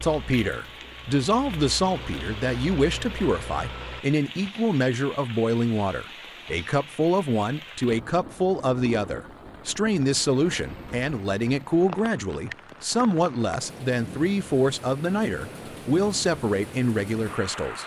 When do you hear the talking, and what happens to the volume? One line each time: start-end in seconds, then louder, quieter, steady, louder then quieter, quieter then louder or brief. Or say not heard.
0.0-17.8 steady.